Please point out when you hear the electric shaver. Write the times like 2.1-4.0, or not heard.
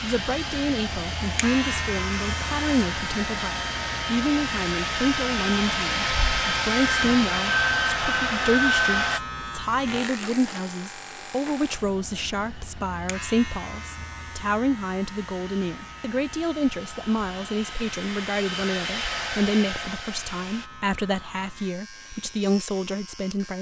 0.0-23.5.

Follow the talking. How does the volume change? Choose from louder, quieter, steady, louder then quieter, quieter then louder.
steady.